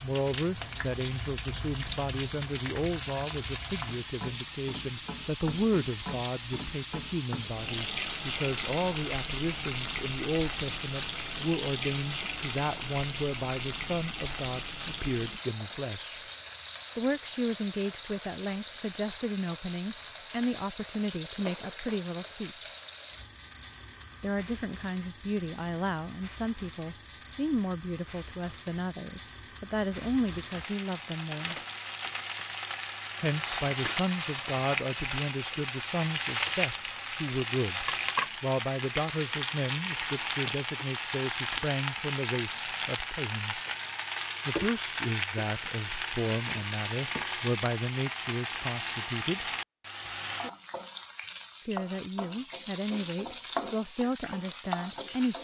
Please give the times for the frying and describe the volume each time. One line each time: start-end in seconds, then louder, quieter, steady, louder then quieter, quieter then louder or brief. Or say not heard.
0.0-55.4 quieter then louder.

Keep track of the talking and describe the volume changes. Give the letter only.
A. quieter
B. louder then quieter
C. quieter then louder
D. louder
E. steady
E.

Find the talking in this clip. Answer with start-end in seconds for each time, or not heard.
0.0-16.2, 16.9-22.7, 24.2-31.6, 33.2-43.6, 44.5-49.5, 51.6-55.4.